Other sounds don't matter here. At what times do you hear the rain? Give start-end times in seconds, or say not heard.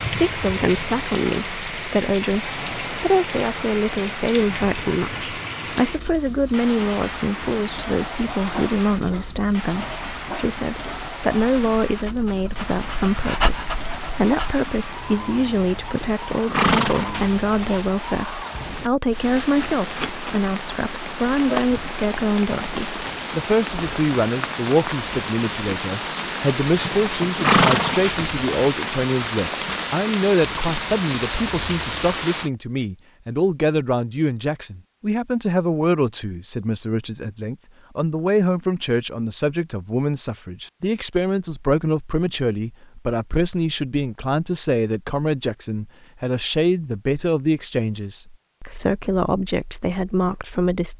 0.0-32.5.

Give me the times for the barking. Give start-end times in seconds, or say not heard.
8.4-14.7.